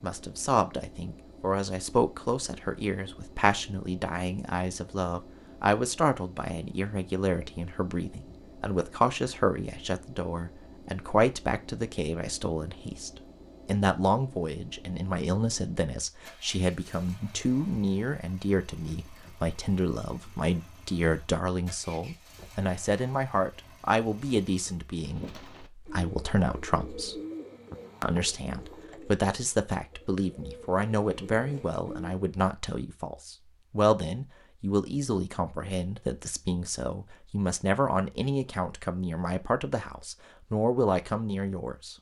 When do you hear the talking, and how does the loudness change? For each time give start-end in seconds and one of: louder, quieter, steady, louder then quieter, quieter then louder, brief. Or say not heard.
0.0-27.2 steady
28.0-41.9 steady.